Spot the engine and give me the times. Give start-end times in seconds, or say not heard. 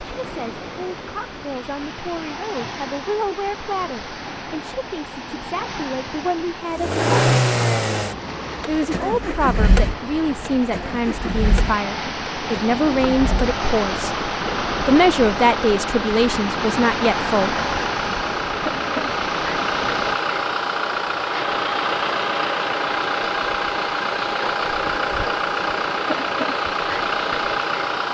6.7-28.1.